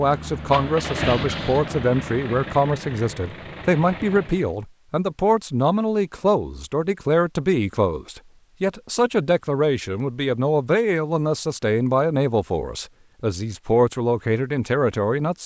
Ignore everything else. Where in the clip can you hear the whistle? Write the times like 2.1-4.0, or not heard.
not heard.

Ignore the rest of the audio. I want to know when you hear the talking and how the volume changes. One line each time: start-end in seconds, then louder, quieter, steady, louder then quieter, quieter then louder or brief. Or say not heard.
0.0-15.4 steady.